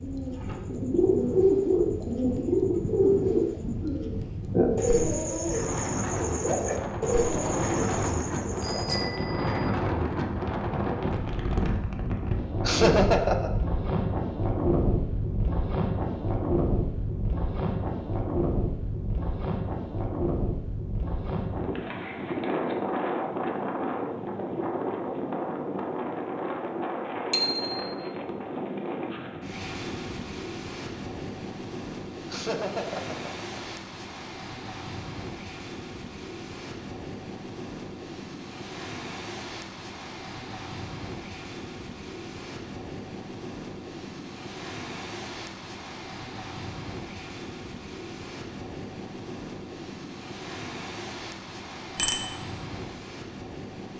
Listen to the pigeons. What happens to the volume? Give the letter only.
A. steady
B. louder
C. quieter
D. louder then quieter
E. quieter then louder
C.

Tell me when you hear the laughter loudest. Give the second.
13 s.